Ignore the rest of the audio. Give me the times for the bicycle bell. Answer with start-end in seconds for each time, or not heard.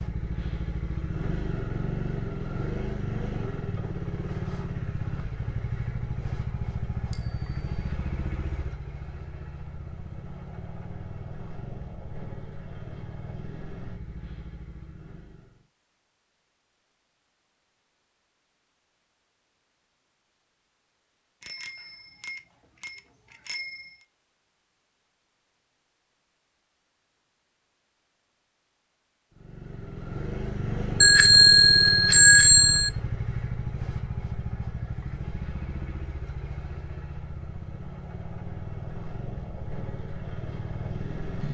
7.1-7.8, 21.4-23.9, 31.0-32.9.